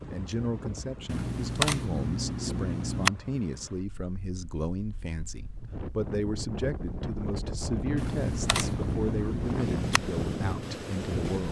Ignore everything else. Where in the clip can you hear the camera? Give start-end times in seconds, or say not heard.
1.1-3.1, 8.0-10.0.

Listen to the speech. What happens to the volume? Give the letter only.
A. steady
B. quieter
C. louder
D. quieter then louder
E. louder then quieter
A.